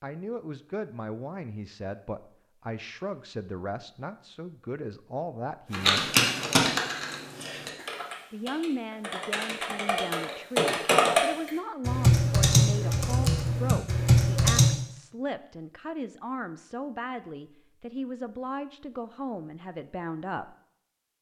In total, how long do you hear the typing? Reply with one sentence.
The typing can be heard for 9 seconds in total.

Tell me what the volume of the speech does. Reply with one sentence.
The volume of the speech stays about the same.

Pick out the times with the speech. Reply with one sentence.
You can hear the speech from 0.0 to 6.2 s and from 8.3 to 20.6 s.